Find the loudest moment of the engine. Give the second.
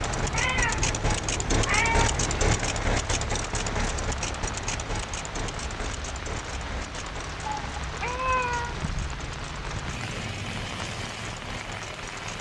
2 s.